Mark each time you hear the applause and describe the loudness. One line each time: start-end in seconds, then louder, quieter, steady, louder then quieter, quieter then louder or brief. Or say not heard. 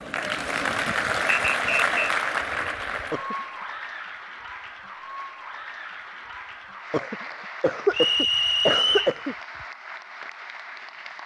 0.0-11.2 quieter.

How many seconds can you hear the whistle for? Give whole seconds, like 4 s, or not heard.
2 s.